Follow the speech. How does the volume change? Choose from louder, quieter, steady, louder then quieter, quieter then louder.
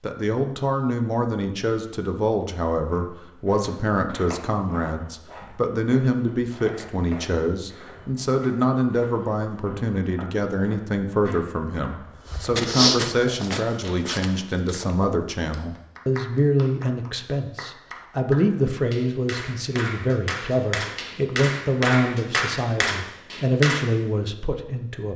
steady.